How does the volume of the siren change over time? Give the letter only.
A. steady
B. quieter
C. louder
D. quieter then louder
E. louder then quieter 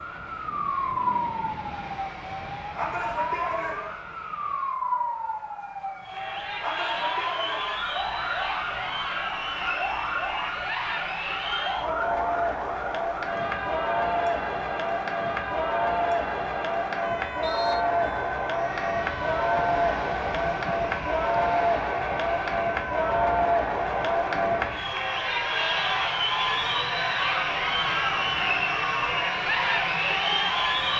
B.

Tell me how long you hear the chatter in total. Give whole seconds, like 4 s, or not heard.
25 s.